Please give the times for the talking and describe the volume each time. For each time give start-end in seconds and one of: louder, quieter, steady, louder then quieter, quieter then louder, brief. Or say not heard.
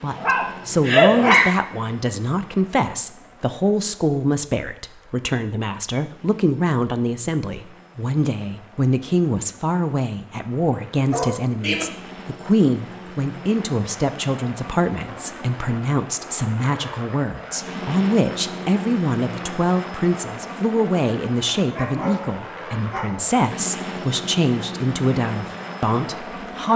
0.0-26.7 steady.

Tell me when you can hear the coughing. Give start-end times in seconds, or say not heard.
not heard.